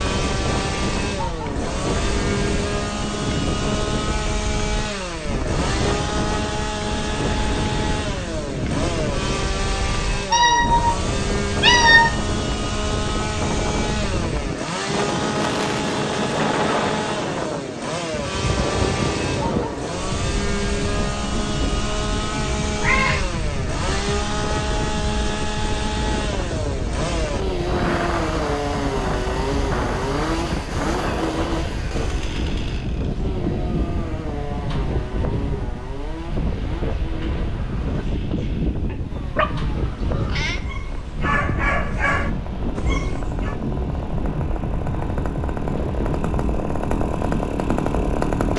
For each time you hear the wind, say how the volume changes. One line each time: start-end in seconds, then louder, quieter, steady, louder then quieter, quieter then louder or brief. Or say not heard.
0.0-48.2 steady.